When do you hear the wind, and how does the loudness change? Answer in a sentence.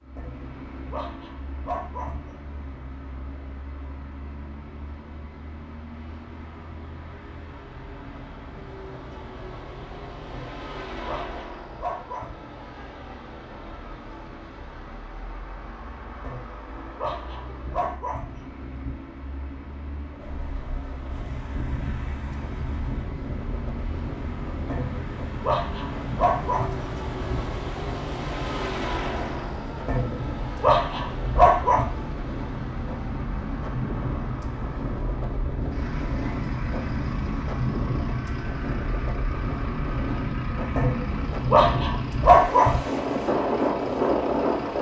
The wind can be heard from 20.2 to 44.7 s, getting louder.